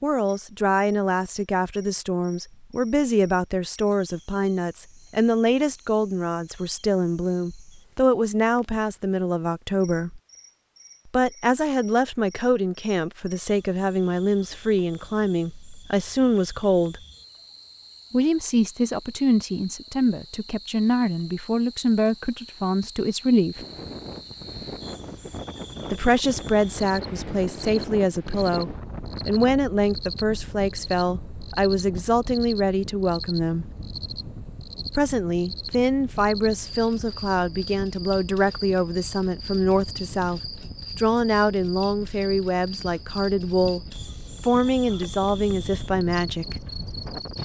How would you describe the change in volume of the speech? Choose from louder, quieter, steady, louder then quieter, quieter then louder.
steady.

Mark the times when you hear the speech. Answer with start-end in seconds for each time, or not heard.
0.0-10.2, 11.1-17.0, 18.1-23.6, 25.9-33.6, 35.0-46.6.